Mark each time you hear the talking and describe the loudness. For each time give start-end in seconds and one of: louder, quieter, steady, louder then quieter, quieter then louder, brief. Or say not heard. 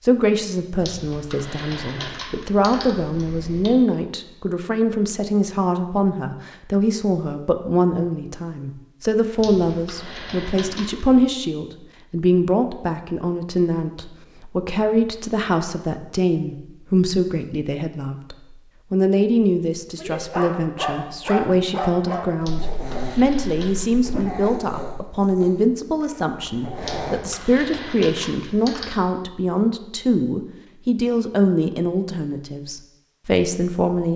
0.0-34.1 steady.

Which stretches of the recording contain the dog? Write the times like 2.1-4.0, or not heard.
19.9-27.2.